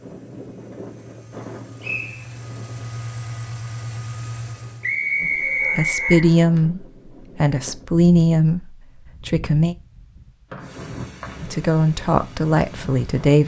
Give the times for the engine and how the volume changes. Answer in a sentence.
The engine can be heard from 0.0 to 5.0 s, getting louder.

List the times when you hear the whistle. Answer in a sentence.
You can hear the whistle from 1.8 to 2.3 s, from 4.8 to 6.3 s and from 10.5 to 11.4 s.